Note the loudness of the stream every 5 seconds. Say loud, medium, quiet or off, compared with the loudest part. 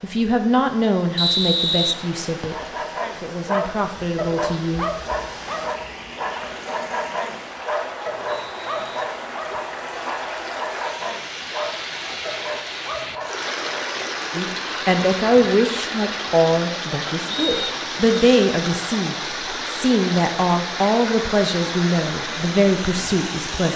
medium, medium, loud, loud, loud.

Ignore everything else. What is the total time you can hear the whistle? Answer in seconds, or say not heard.
4 s.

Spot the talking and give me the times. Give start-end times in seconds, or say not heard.
0.0-4.8, 14.3-23.7.